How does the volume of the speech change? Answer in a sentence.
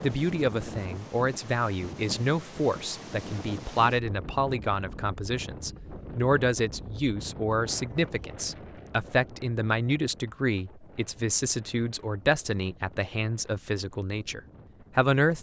The volume of the speech stays about the same.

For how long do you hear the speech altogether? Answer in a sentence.
The speech can be heard for 15 seconds in total.